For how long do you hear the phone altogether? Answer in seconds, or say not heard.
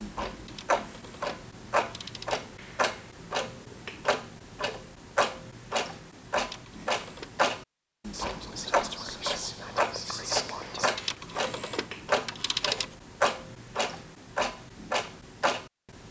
5 s.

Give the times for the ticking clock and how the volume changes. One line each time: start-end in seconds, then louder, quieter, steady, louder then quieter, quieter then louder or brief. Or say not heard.
0.0-16.0 steady.